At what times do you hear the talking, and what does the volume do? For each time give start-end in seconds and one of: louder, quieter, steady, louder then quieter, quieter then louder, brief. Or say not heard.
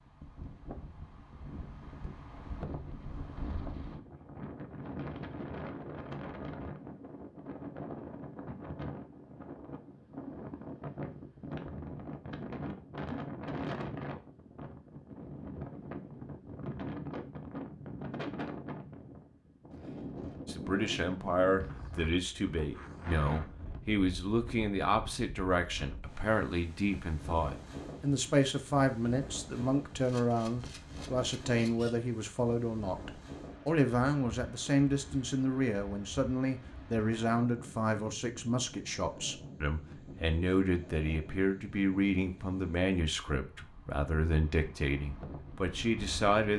20.4-46.5 steady.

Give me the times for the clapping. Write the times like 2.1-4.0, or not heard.
not heard.